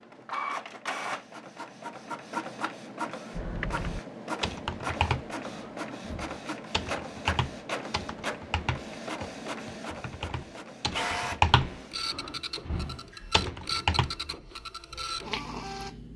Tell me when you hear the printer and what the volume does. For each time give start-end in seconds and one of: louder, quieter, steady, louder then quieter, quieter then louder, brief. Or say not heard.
0.0-16.1 steady.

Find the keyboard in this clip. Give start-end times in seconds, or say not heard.
3.4-14.2.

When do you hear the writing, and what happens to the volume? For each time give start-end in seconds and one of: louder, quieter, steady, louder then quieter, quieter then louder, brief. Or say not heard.
not heard.